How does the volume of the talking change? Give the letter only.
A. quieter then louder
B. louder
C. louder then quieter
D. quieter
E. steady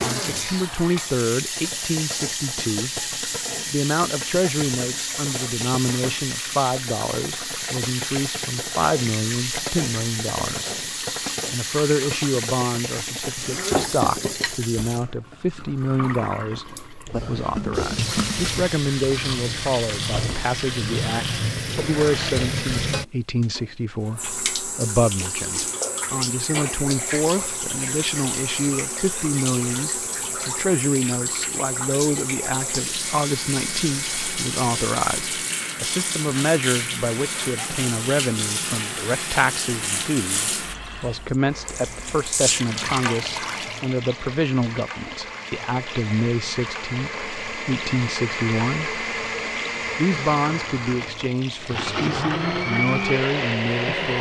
E.